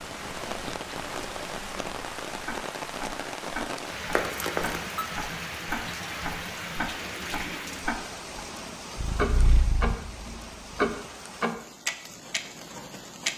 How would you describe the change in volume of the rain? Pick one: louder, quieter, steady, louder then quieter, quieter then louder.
quieter.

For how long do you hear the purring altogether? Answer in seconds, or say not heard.
2 s.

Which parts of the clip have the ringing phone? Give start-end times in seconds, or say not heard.
4.1-5.0.